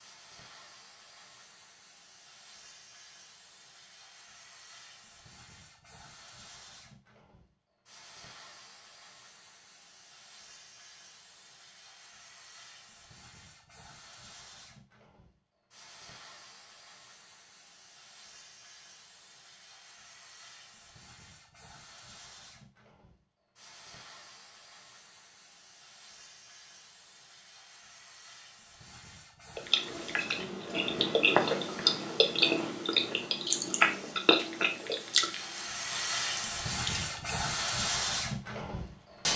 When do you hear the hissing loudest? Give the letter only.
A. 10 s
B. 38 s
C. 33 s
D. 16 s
B.